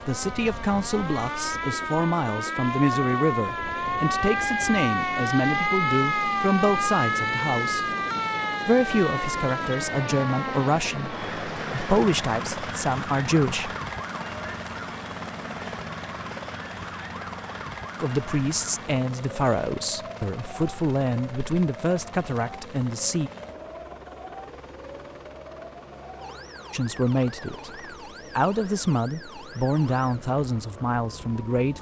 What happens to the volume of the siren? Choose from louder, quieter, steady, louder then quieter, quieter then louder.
quieter.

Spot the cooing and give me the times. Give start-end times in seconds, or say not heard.
not heard.